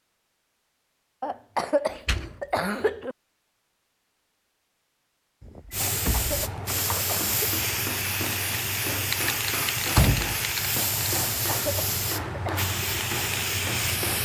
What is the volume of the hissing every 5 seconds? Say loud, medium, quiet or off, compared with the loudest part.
off, loud, loud.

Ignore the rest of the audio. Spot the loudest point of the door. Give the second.
10 s.